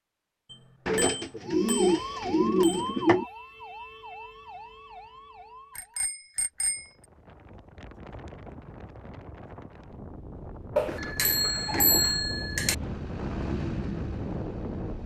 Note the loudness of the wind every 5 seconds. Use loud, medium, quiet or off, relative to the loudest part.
off, medium, loud.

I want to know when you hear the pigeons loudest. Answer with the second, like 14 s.
3 s.